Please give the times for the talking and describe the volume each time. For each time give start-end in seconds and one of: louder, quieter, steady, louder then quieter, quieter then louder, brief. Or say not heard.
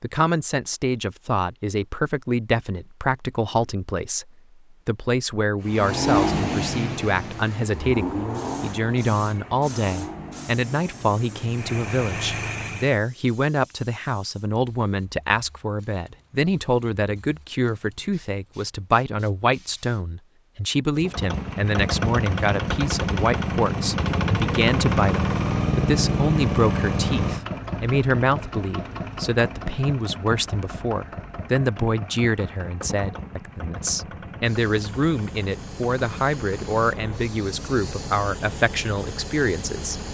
0.0-40.0 steady.